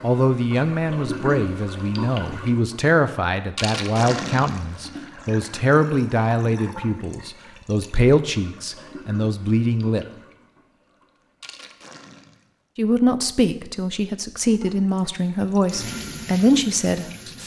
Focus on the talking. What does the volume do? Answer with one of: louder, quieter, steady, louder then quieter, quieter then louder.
steady.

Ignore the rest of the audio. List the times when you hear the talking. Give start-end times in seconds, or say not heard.
0.0-10.1, 12.8-17.3.